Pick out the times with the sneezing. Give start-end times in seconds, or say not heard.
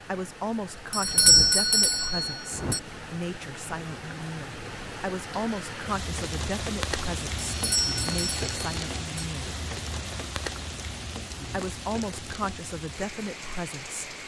not heard.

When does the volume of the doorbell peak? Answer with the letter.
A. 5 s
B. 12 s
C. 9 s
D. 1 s
D.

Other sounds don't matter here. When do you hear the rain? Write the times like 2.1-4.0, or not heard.
0.0-14.2.